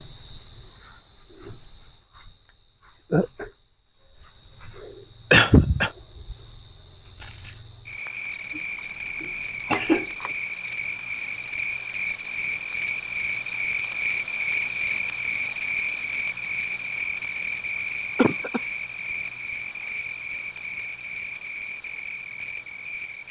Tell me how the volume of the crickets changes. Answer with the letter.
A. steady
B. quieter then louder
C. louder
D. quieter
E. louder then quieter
E.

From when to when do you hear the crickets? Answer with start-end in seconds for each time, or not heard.
0.0-23.2.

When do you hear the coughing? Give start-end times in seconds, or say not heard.
5.3-5.9, 9.2-10.3, 18.1-18.6.